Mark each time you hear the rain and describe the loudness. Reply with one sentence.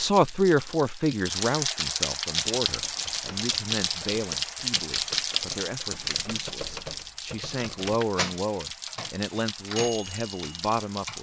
The rain can be heard from 0.0 to 11.1 s, getting quieter.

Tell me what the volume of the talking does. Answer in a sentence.
The loudness of the talking goes down, then up.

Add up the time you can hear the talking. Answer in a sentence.
You can hear the talking for 11 seconds altogether.